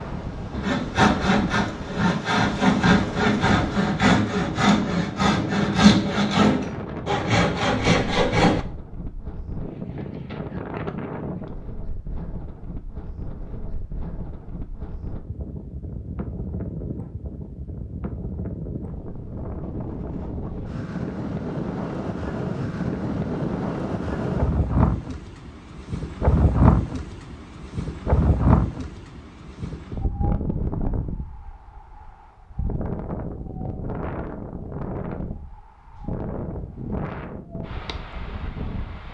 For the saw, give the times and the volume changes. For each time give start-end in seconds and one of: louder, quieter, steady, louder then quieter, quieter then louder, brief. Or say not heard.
0.5-8.7 steady.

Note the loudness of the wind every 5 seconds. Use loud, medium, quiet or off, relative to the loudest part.
medium, medium, medium, medium, loud, loud, medium, medium.